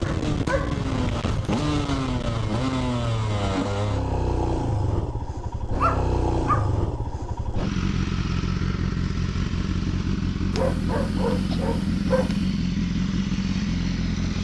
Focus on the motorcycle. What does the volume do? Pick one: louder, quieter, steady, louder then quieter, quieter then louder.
steady.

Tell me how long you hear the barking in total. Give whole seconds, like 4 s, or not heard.
5 s.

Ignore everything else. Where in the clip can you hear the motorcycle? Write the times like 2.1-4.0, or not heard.
0.0-14.4.